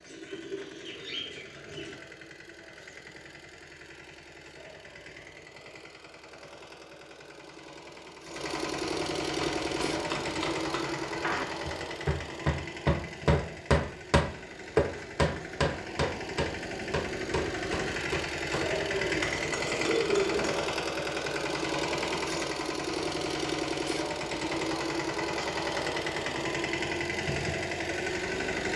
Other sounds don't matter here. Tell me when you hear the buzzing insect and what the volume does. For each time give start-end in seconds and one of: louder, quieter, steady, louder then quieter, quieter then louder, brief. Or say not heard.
not heard.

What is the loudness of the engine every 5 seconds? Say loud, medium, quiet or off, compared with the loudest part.
quiet, medium, medium, loud, loud, loud.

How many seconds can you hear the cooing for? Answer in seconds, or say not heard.
4 s.